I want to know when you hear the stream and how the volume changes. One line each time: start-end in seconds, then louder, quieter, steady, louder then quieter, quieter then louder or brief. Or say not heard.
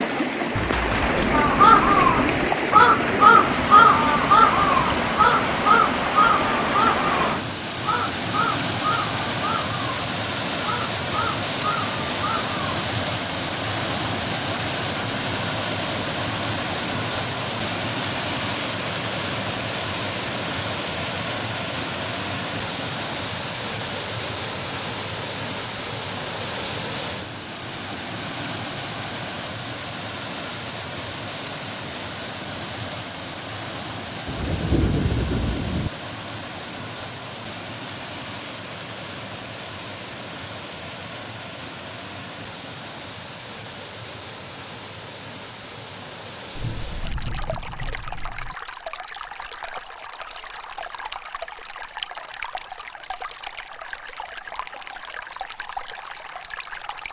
0.0-57.0 quieter.